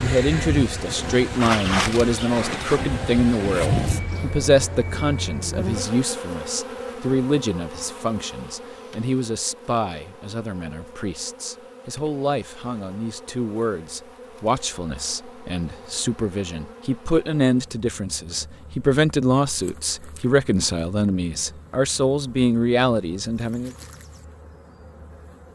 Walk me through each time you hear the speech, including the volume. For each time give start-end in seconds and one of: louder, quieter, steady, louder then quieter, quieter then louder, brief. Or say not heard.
0.0-23.8 quieter then louder.